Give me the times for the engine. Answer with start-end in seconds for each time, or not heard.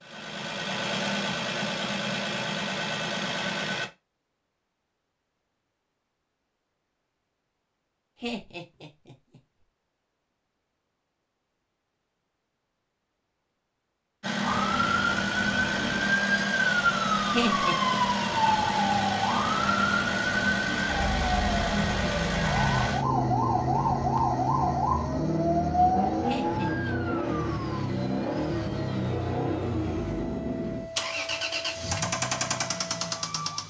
0.0-3.9, 14.2-33.6.